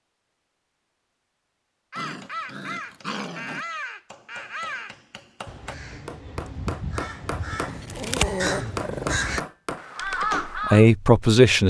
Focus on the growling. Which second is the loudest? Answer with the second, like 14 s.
8 s.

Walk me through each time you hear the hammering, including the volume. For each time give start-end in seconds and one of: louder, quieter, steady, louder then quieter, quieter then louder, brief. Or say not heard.
2.0-10.6 louder.